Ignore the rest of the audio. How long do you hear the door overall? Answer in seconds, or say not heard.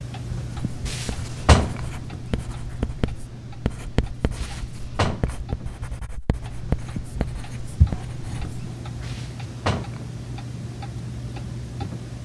3 s.